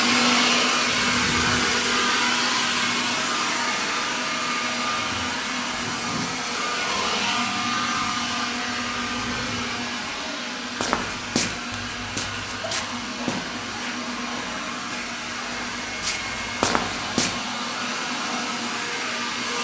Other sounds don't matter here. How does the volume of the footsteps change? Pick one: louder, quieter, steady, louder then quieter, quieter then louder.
quieter then louder.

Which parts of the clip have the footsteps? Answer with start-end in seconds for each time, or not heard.
10.8-17.4.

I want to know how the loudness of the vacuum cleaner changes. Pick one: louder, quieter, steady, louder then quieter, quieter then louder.
quieter.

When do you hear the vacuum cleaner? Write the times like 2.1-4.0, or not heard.
0.0-19.5.